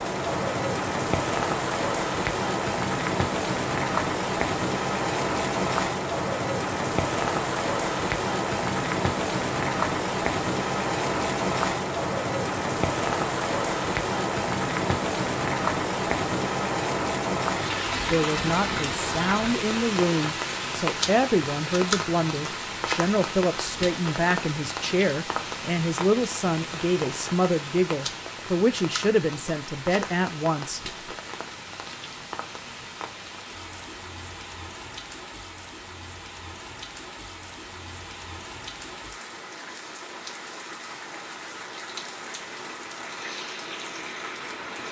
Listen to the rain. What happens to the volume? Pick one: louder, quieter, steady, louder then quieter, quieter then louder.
quieter.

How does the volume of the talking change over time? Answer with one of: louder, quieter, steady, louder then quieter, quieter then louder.
steady.